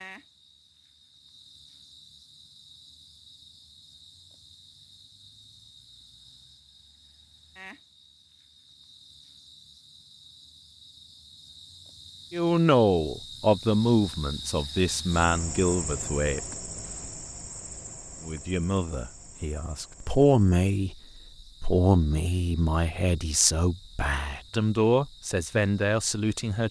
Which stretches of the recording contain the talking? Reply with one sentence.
The talking can be heard from 12.3 to 16.4 s and from 18.2 to 26.6 s.